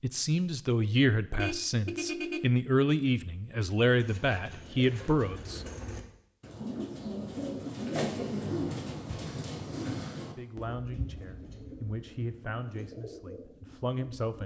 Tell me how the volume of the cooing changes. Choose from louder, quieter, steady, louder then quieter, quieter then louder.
louder then quieter.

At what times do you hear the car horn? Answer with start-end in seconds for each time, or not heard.
1.4-2.5.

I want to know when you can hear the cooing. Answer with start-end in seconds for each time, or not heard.
3.9-14.4.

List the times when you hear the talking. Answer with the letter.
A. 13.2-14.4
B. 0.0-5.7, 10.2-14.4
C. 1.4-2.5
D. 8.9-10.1
B.